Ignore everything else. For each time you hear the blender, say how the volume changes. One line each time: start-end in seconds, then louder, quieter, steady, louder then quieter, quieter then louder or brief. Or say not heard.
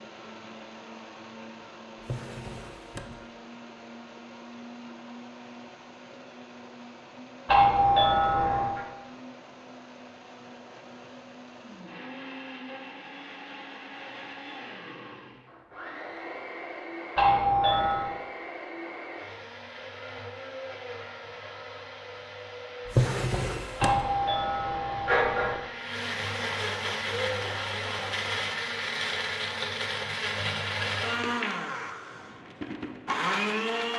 0.0-33.9 louder.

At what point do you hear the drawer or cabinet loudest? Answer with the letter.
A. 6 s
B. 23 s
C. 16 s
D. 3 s
B.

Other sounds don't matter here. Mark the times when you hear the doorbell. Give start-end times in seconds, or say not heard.
7.5-8.8, 17.1-18.1, 23.8-25.6.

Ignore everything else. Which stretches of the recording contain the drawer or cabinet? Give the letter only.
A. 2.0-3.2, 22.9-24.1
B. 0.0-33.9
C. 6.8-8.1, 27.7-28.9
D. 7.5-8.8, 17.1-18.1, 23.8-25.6
A.